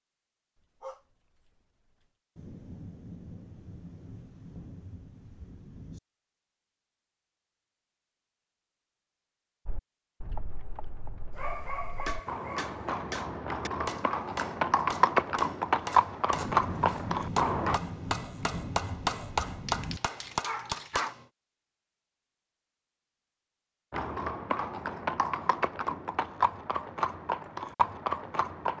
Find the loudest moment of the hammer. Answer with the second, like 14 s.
19 s.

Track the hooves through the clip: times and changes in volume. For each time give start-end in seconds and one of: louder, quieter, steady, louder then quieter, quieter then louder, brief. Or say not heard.
9.7-17.8 louder
23.9-28.7 steady.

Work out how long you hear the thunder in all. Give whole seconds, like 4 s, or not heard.
7 s.